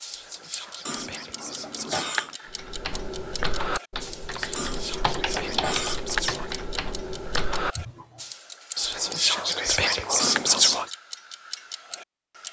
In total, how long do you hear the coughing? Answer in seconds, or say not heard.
4 s.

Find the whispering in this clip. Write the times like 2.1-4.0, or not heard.
0.1-2.2, 4.3-6.5, 8.8-10.9.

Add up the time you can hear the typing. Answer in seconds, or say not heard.
6 s.